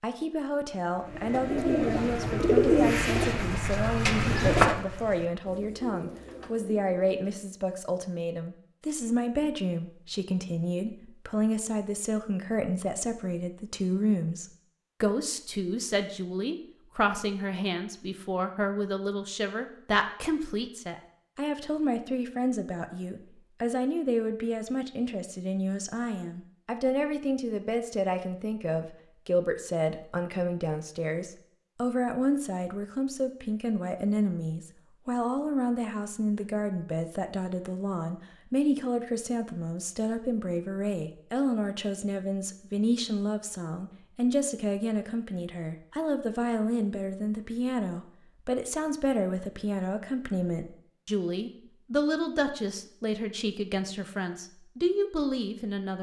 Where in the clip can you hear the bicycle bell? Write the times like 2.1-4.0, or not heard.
not heard.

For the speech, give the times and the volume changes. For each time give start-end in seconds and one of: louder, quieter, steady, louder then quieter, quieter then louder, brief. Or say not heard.
0.0-55.9 steady.